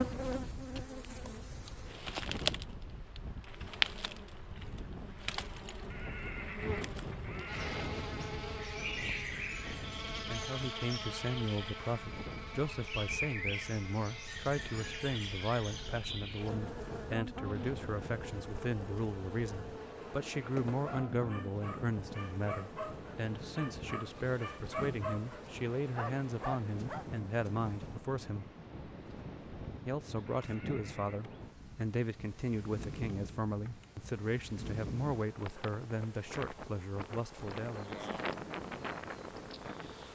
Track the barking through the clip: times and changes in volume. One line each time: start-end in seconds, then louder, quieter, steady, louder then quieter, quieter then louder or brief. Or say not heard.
20.4-27.1 louder.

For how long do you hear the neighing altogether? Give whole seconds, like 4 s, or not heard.
3 s.